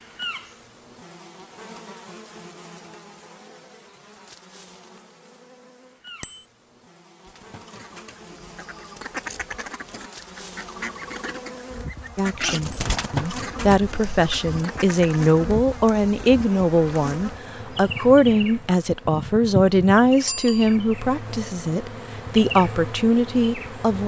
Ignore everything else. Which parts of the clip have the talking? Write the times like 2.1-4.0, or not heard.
12.2-24.0.